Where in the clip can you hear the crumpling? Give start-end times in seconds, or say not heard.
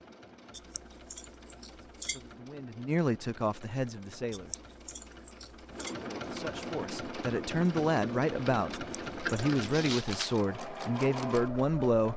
9.3-10.3.